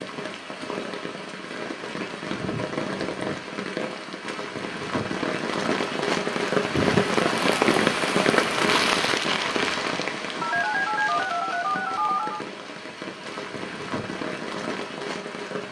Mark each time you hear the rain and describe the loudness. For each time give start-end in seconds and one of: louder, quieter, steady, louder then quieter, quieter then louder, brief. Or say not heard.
0.0-15.6 louder then quieter.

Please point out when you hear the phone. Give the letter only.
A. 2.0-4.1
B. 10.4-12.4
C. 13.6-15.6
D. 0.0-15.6
B.